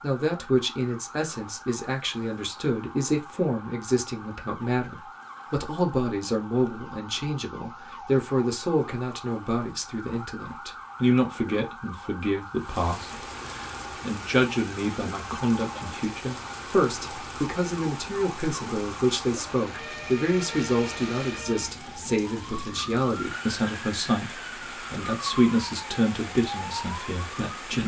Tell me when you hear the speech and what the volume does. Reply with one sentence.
The speech can be heard from 0.0 to 27.8 s, at a steady volume.